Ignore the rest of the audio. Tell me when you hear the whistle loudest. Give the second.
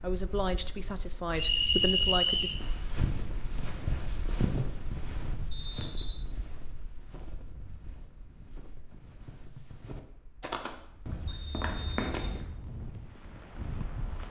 2 s.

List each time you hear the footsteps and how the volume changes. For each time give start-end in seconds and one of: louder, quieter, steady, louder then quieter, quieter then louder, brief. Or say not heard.
2.5-12.4 quieter then louder.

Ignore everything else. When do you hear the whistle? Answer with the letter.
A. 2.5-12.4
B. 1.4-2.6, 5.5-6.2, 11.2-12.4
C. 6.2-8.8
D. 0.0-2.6
B.